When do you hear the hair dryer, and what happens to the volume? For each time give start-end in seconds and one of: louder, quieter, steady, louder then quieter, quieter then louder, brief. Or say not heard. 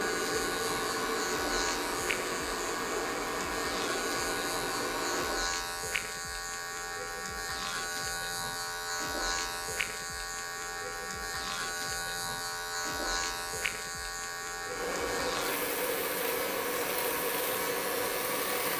0.0-5.5 steady
14.7-18.7 steady.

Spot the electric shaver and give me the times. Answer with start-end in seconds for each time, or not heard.
0.0-18.7.